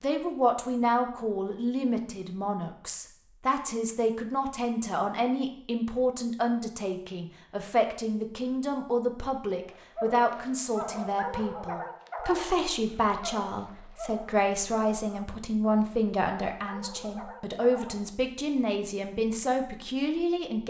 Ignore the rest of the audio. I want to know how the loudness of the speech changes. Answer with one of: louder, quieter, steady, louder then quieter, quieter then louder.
steady.